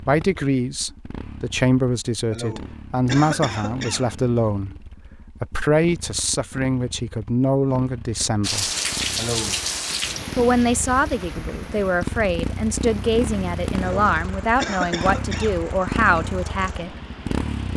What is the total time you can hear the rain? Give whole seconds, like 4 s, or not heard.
9 s.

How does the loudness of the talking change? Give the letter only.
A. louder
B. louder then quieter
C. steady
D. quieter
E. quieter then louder
C.